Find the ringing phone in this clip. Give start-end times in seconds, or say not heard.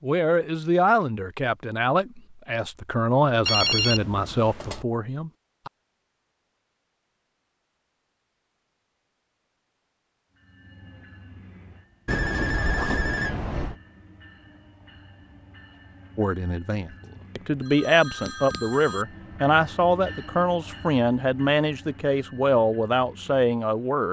3.5-4.8, 12.1-13.8, 17.0-19.1.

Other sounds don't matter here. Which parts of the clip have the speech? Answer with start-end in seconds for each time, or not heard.
0.0-5.7, 16.1-24.0.